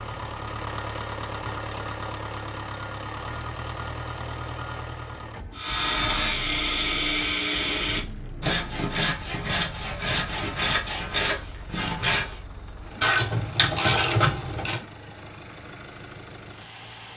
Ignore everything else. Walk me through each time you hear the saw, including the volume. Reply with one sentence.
You can hear the saw from 5.5 to 12.4 s, at a steady volume.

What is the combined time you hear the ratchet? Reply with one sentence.
You can hear the ratchet for 2 seconds altogether.